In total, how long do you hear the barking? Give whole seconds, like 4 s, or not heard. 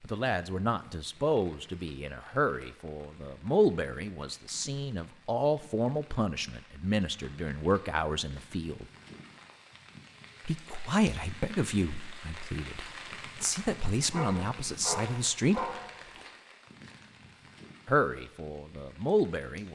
2 s.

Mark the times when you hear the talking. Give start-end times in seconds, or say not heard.
0.0-8.8, 10.4-15.7, 17.9-19.7.